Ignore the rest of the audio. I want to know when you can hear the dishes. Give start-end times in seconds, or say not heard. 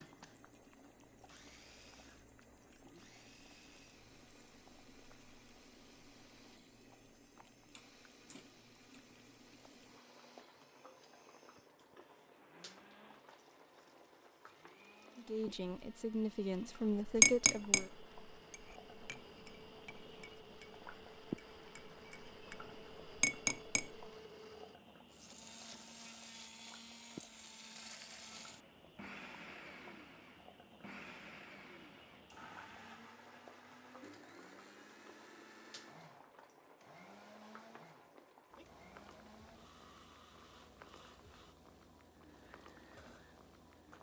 17.1-17.9, 18.5-23.9.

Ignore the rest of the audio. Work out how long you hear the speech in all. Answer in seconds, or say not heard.
3 s.